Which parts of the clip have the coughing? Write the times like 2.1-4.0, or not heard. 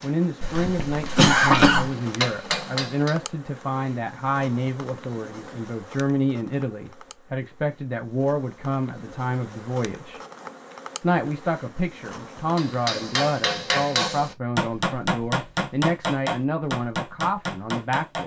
0.4-1.9.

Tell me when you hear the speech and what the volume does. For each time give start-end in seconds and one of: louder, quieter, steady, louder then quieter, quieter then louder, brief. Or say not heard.
0.0-10.2 steady
11.0-18.2 steady.